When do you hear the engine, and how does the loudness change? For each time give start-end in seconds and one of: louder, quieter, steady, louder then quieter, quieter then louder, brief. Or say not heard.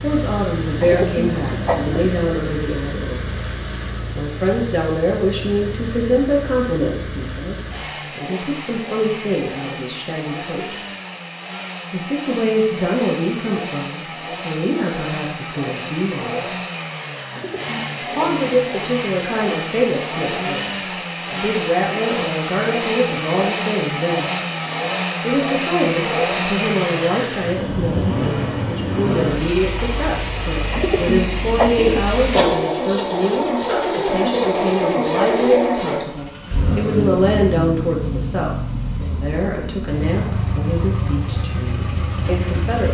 0.0-42.8 louder.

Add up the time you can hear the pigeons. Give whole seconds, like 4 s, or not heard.
4 s.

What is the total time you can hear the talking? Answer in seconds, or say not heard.
38 s.